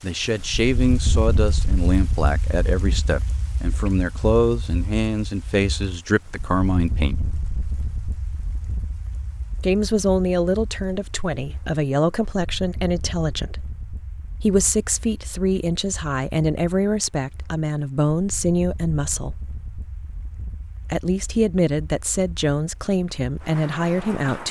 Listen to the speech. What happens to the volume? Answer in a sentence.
The volume of the speech stays about the same.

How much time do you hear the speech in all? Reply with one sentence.
The speech can be heard for 20 seconds in total.